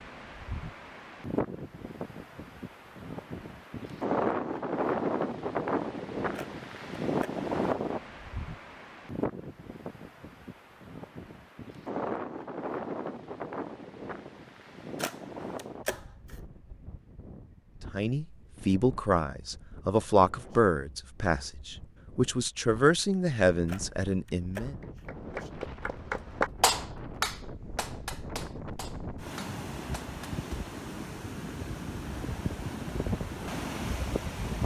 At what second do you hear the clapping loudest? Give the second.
27 s.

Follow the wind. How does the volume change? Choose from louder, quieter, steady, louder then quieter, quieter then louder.
quieter then louder.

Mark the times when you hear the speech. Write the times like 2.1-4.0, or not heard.
17.9-24.8.